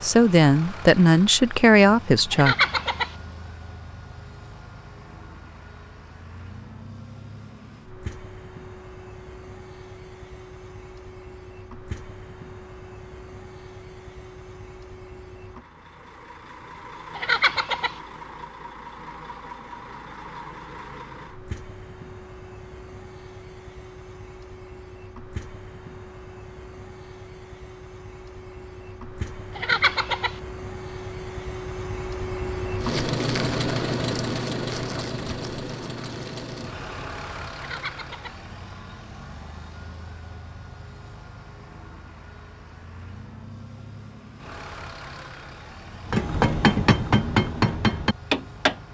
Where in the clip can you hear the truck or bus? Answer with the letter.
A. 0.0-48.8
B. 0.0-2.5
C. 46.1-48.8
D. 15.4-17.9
A.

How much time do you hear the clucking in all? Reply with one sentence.
You can hear the clucking for 3 seconds altogether.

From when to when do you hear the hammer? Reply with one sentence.
The hammer can be heard from 46.1 to 48.8 s.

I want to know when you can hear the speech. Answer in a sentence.
The speech can be heard from 0.0 to 2.5 s.